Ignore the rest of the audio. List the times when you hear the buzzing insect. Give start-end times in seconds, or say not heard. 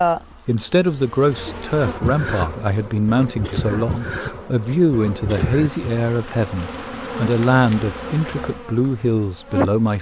0.0-9.9.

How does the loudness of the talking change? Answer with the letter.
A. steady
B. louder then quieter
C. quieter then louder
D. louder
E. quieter
A.